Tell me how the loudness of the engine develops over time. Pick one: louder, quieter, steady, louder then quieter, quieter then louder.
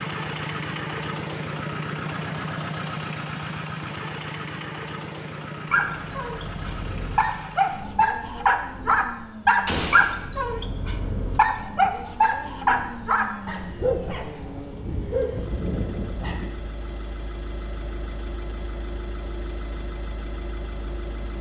quieter.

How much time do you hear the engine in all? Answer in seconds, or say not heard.
21 s.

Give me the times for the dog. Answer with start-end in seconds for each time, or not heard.
5.7-16.5.